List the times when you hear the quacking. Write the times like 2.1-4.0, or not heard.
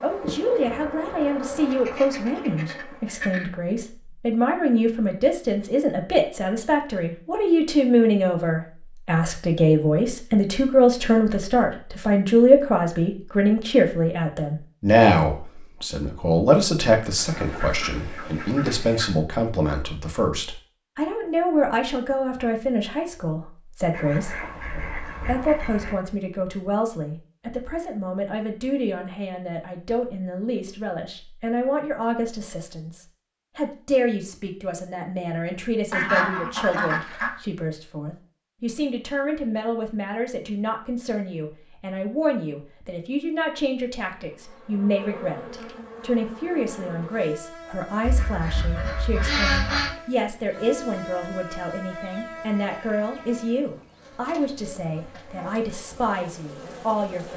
1.6-3.5, 17.1-19.1, 23.9-25.9, 35.9-37.4, 48.0-50.0.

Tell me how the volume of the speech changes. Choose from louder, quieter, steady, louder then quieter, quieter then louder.
quieter.